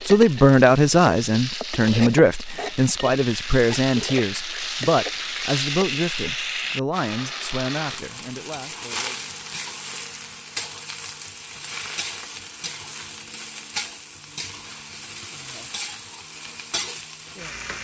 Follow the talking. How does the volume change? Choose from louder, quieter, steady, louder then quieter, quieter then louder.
quieter.